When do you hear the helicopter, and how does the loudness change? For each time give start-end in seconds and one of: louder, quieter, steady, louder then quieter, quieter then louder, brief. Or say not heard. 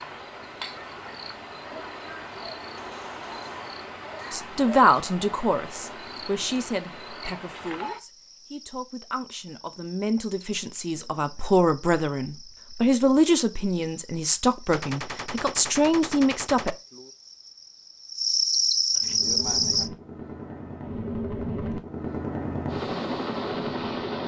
18.9-24.2 louder.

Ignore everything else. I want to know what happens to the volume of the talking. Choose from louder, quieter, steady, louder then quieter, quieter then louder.
quieter then louder.